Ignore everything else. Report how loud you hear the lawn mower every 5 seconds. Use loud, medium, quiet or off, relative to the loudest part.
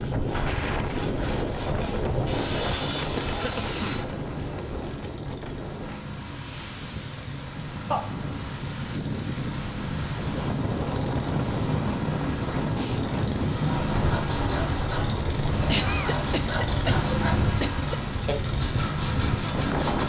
medium, medium, loud, loud.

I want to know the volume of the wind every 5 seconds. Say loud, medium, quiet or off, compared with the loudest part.
loud, medium, loud, loud.